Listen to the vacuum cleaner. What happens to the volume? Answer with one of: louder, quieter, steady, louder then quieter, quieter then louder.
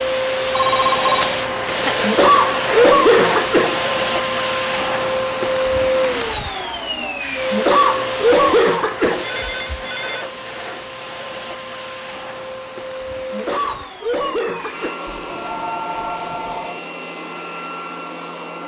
quieter.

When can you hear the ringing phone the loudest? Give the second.
1 s.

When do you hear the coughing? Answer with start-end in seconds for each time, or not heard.
2.0-3.8, 7.5-9.2, 13.3-14.9.